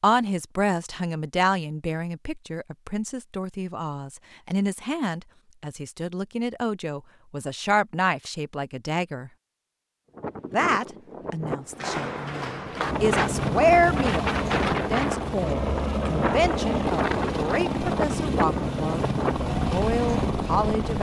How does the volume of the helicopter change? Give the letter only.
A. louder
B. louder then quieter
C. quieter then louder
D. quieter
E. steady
E.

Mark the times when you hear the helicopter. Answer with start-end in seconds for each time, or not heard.
12.8-20.9.